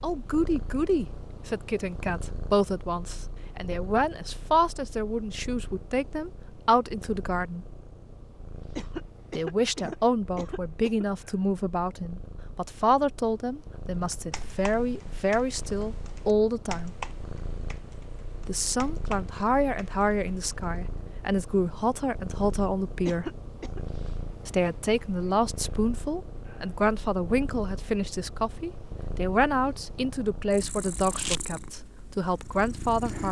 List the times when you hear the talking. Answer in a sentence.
You can hear the talking from 0.0 to 7.7 s, from 9.3 to 16.9 s, from 18.4 to 23.3 s and from 24.4 to 33.2 s.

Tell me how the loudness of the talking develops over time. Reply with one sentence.
The loudness of the talking stays about the same.